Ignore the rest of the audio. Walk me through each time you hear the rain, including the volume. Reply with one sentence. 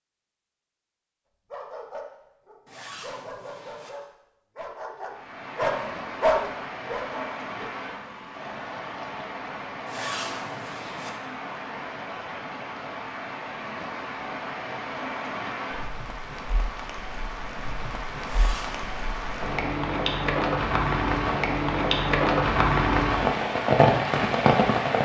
You can hear the rain from 5.0 to 25.0 s, getting louder.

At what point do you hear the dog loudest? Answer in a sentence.
The volume of the dog peaks at 6 seconds.